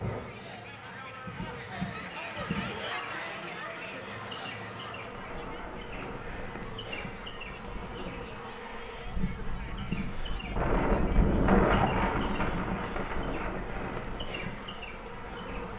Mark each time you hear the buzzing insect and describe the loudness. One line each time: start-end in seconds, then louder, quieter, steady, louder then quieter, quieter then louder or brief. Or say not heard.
0.0-15.7 steady.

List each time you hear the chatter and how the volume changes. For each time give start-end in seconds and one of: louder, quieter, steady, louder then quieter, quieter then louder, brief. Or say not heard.
0.0-15.7 quieter.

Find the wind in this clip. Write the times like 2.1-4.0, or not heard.
5.2-15.7.